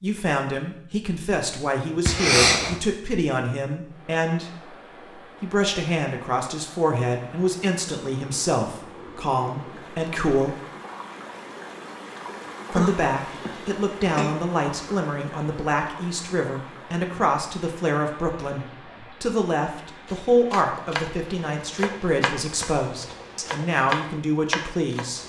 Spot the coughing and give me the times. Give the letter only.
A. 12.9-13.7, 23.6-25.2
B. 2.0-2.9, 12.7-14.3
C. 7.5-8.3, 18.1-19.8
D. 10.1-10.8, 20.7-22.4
B.